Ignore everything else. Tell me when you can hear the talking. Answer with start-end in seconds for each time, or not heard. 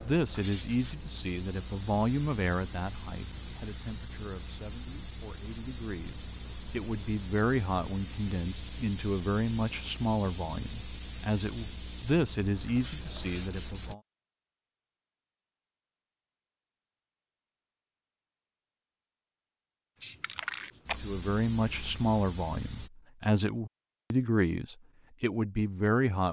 0.0-14.0, 21.0-26.2.